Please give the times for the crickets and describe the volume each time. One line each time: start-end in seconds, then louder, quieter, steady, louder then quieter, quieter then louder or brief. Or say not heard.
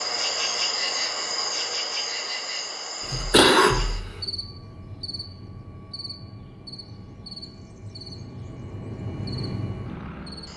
0.0-10.5 quieter.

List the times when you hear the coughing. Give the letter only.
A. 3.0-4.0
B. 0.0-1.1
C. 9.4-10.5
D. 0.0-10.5
A.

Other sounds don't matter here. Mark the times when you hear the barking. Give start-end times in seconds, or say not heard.
not heard.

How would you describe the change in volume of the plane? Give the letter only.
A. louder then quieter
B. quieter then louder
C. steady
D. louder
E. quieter
D.